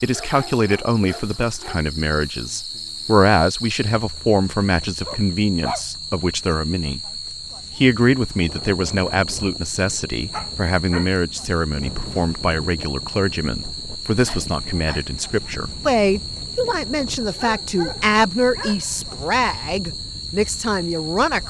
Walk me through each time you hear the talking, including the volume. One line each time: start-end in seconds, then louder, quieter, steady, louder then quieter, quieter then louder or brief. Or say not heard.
0.0-21.4 steady.